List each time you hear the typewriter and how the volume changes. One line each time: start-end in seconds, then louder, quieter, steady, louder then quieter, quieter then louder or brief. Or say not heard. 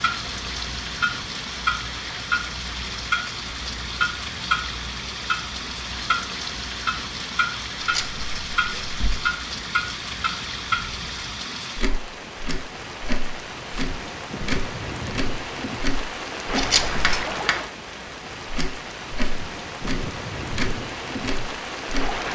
not heard.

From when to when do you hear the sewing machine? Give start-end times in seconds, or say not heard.
not heard.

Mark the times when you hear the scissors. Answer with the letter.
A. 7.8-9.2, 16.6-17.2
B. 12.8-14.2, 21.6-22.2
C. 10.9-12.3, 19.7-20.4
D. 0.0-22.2
A.